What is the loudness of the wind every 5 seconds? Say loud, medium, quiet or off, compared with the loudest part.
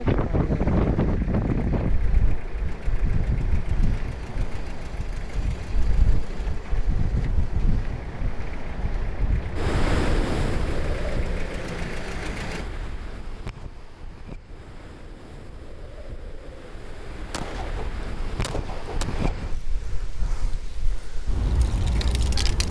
loud, medium, medium, medium, medium.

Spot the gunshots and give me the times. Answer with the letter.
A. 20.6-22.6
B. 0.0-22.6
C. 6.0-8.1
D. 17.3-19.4
D.